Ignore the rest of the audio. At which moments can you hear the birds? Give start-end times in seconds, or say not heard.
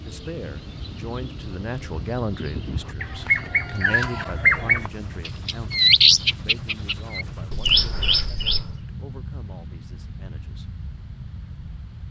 0.0-8.7.